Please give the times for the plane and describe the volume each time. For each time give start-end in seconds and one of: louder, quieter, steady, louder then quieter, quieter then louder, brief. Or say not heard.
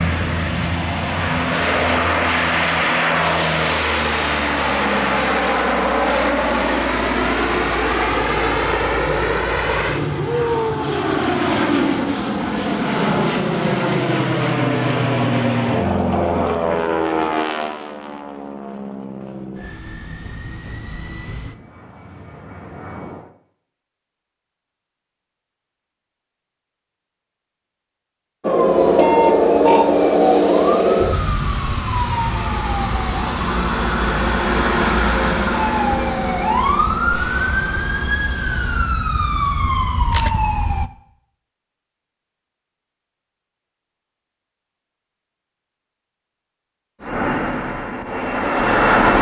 0.0-23.4 quieter
28.6-39.0 louder then quieter
47.0-49.1 brief.